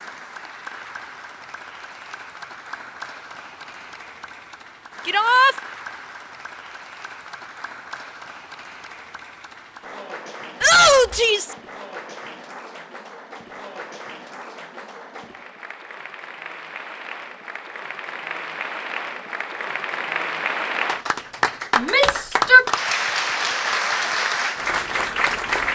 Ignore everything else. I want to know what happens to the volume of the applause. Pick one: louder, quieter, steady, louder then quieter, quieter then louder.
louder.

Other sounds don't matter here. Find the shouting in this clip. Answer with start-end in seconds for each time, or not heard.
5.0-5.5, 10.6-11.6, 21.8-22.6.